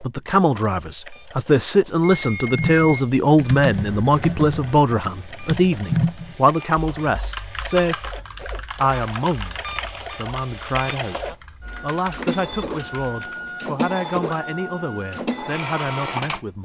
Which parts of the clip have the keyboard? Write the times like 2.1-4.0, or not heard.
2.5-13.5.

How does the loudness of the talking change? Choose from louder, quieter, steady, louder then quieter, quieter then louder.
quieter.